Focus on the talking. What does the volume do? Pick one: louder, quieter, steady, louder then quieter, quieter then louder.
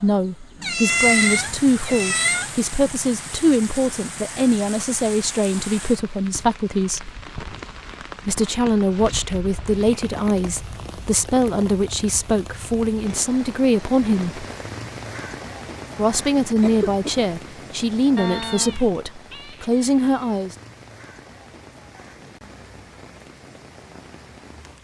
steady.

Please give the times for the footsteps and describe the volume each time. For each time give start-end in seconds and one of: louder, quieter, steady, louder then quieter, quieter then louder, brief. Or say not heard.
not heard.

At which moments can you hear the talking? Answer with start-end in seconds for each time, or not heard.
0.0-7.1, 8.2-14.4, 15.9-20.6.